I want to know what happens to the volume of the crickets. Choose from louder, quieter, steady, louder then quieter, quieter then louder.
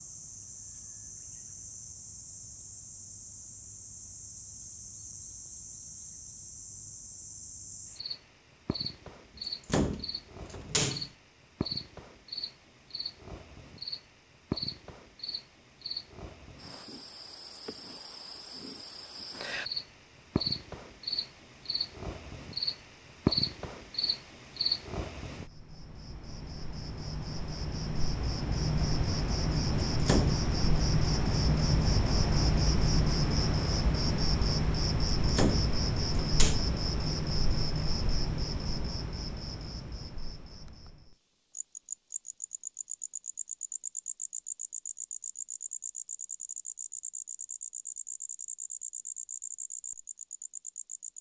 louder then quieter.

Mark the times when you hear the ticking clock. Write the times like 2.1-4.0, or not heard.
not heard.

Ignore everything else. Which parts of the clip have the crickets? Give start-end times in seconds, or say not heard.
0.0-51.1.